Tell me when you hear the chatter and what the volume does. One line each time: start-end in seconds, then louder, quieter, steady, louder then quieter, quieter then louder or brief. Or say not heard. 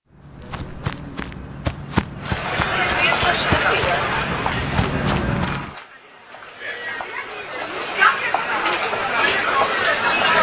2.2-10.3 quieter then louder.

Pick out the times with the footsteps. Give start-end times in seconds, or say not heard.
0.1-5.7.